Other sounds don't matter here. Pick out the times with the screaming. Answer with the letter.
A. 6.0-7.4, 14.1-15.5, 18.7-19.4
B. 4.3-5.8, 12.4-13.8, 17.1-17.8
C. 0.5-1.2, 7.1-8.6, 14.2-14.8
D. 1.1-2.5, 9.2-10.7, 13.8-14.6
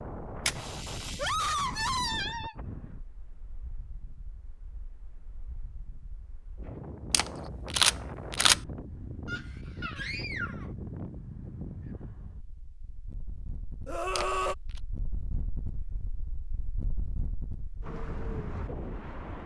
D.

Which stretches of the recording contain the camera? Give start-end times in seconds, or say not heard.
0.5-1.2, 7.1-8.6, 14.2-14.8.